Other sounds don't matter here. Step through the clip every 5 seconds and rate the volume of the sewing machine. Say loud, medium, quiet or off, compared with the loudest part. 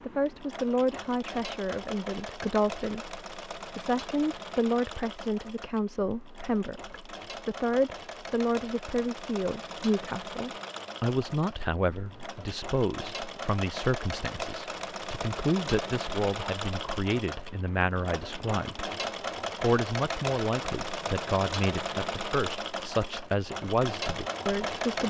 medium, medium, medium, loud, loud.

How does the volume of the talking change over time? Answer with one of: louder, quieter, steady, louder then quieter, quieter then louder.
steady.